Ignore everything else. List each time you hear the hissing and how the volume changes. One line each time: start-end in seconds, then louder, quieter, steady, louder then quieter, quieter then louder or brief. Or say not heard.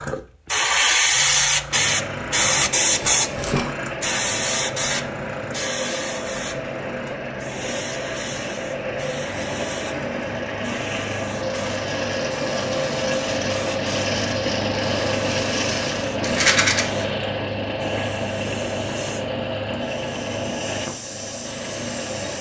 0.0-22.3 quieter.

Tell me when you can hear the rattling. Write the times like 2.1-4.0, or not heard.
2.9-3.8, 16.2-16.9.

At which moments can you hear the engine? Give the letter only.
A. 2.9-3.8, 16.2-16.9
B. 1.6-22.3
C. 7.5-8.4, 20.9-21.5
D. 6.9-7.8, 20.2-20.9
B.